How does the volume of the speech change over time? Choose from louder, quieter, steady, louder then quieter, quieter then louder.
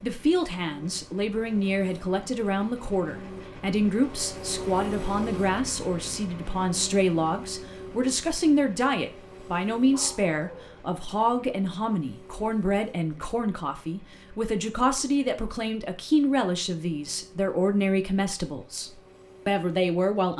steady.